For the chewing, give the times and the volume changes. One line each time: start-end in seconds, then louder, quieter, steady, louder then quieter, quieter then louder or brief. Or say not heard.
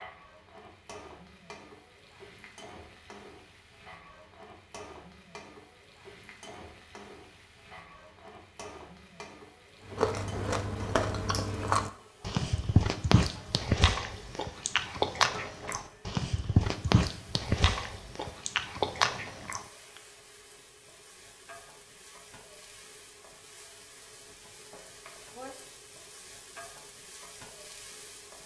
9.9-19.6 steady.